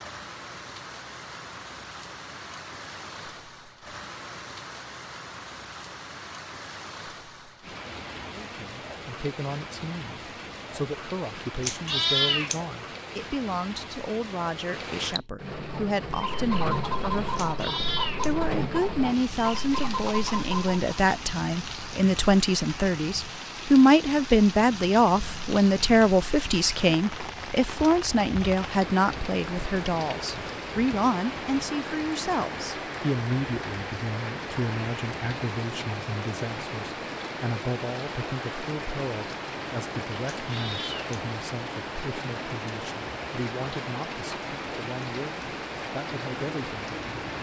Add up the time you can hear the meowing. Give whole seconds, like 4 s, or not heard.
3 s.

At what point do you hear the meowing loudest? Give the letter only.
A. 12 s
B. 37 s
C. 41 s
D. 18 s
A.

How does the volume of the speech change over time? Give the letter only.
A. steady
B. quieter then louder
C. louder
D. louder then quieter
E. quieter
D.